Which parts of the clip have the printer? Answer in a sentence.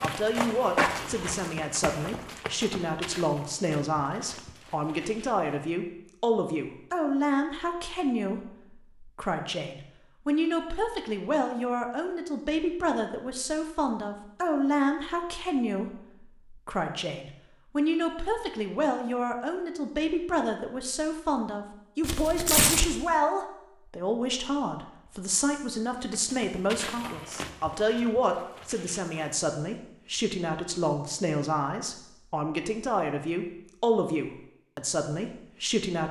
The printer can't be heard in this clip.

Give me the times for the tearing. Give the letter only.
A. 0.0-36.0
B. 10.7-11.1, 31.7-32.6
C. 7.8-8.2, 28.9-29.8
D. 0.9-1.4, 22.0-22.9
D.